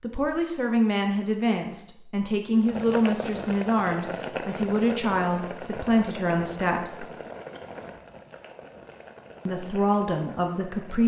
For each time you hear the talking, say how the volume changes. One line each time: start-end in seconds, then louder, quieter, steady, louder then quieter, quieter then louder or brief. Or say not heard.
0.0-7.0 steady
9.4-11.0 brief.